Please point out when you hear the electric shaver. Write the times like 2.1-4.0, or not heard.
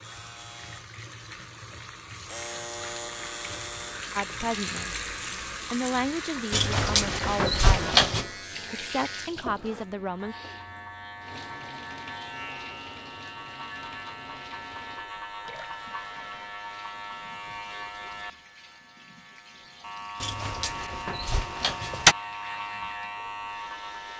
0.0-24.1.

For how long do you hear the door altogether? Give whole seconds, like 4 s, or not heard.
4 s.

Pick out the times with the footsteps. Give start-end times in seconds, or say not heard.
not heard.